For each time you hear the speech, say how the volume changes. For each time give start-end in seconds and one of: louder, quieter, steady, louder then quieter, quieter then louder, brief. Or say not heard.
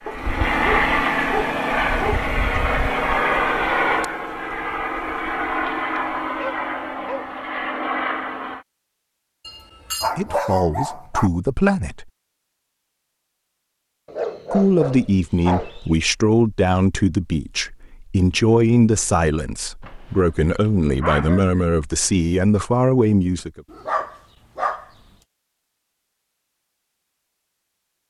10.2-12.1 brief
14.5-23.6 steady.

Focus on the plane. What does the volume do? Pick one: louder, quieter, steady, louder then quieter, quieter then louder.
quieter.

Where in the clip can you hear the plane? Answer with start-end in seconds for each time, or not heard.
0.0-8.7.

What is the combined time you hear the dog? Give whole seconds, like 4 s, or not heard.
10 s.